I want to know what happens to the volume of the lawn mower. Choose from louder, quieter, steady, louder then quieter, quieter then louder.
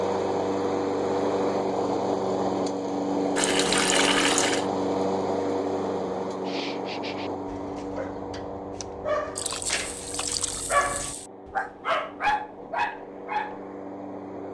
quieter.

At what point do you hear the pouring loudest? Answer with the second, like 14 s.
4 s.